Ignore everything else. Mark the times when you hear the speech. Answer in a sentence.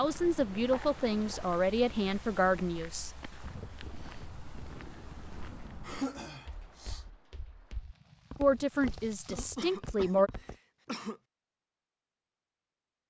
The speech can be heard from 0.0 to 3.1 s and from 8.4 to 10.3 s.